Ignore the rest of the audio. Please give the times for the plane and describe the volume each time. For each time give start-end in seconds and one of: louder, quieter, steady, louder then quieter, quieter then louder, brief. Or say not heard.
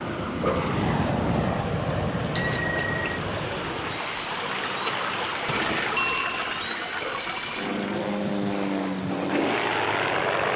0.0-10.5 quieter then louder.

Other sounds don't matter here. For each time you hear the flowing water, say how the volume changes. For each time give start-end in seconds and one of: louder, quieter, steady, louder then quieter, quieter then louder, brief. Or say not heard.
0.0-10.5 louder then quieter.